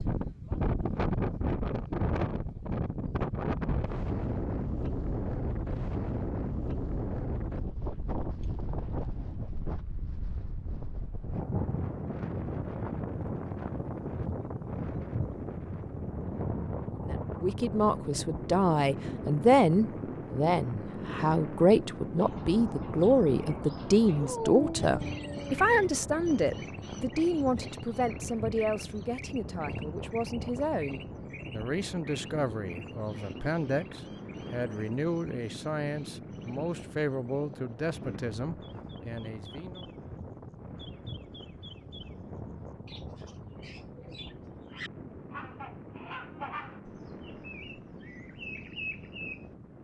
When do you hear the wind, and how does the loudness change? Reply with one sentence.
You can hear the wind from 0.0 to 49.7 s, getting quieter.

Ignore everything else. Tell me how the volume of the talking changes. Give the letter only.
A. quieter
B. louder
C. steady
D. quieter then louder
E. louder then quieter
A.